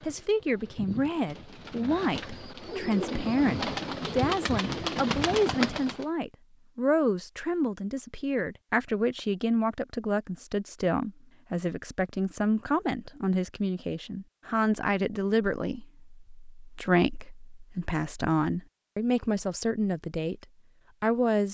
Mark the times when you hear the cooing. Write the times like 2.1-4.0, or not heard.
0.0-6.0.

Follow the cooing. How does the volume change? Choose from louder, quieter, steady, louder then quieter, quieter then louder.
louder.